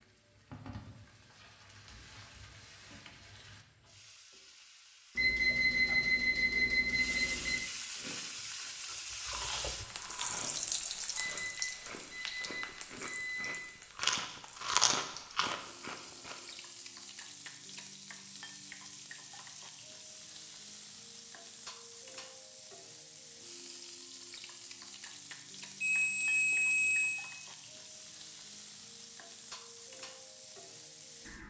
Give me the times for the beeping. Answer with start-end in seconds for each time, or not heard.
5.2-7.6, 11.2-13.7, 25.8-27.2.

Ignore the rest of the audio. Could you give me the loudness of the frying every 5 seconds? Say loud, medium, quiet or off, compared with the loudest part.
quiet, loud, loud, medium, medium, medium, medium.